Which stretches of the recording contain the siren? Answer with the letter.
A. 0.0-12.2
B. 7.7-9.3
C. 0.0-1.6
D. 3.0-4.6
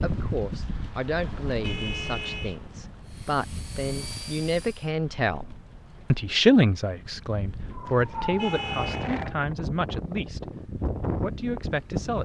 B.